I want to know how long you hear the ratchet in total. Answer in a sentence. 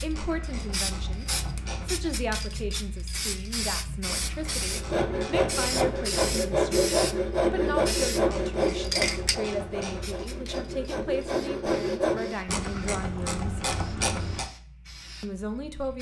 You can hear the ratchet for 8 seconds altogether.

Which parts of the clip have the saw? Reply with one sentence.
You can hear the saw from 4.7 to 12.4 s.